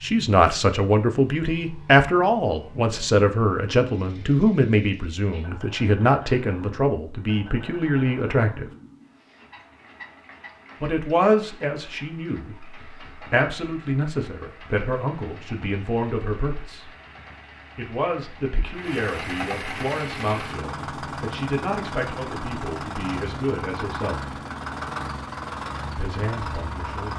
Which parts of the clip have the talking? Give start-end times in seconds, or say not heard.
0.0-8.7, 10.8-16.9, 17.8-24.4, 25.9-27.1.